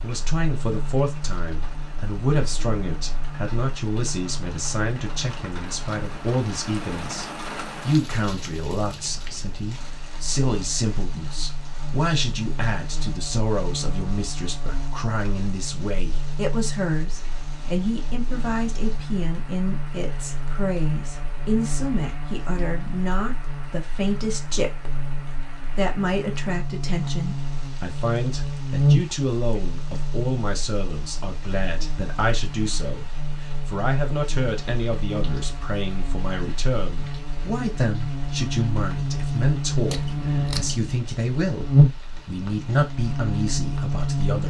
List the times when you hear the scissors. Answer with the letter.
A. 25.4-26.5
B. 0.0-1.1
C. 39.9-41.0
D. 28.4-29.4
C.